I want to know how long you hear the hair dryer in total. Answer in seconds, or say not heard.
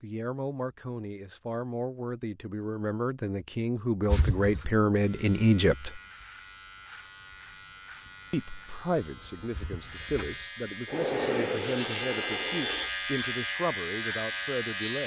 2 s.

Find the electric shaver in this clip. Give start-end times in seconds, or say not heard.
4.9-15.0.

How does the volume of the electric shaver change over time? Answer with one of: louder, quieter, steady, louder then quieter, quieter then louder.
louder.